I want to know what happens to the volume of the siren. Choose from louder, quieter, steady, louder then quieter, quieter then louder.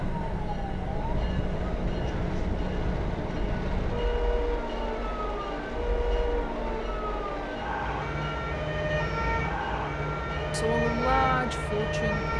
steady.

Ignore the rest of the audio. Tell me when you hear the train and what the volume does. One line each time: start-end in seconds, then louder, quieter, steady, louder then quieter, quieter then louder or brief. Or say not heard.
0.0-12.3 steady.